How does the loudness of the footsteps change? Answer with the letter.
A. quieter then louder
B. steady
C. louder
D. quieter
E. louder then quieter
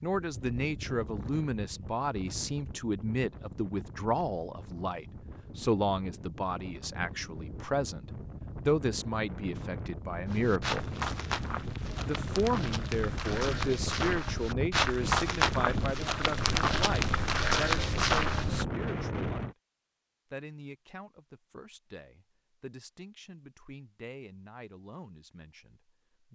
C.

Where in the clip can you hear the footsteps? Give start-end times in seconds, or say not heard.
10.2-18.6.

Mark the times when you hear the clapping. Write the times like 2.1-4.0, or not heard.
not heard.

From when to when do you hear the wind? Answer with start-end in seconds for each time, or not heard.
0.1-19.6.